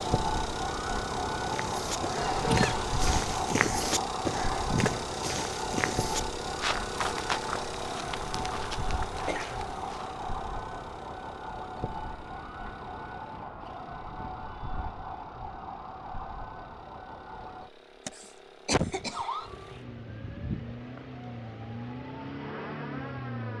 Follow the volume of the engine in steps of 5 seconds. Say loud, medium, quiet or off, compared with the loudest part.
loud, loud, quiet, quiet, loud.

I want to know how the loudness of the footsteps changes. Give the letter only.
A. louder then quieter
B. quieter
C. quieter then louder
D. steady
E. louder
B.